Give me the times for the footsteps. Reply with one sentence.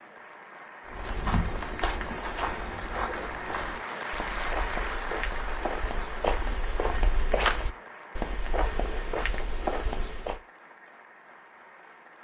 The footsteps can be heard from 0.8 to 10.4 s.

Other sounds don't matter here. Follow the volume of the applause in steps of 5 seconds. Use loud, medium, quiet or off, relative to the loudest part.
loud, loud, quiet.